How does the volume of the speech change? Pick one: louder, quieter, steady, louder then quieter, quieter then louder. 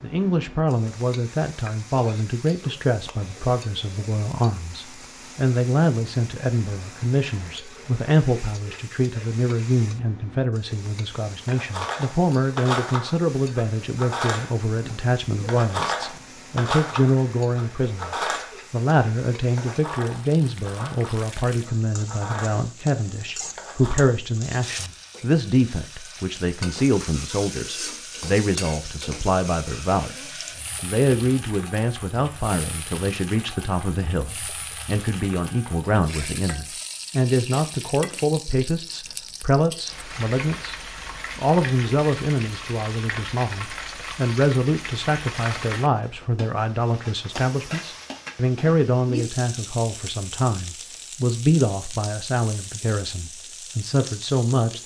steady.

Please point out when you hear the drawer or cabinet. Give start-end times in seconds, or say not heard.
not heard.